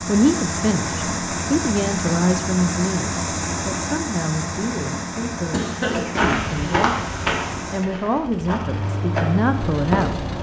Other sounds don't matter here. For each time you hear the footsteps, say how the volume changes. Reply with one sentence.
The footsteps can be heard from 5.8 to 10.2 s, getting quieter then louder.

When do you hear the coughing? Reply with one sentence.
You can hear the coughing from 5.5 to 6.4 s.